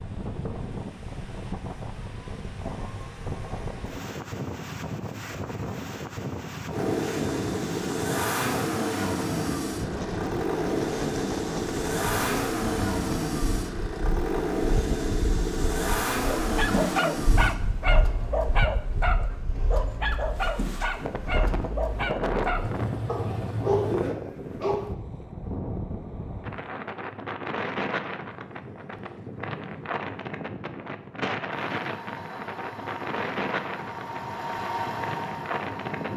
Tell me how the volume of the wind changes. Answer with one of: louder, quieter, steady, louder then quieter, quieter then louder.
steady.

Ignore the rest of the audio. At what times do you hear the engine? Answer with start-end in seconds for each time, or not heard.
6.7-24.1, 31.7-36.1.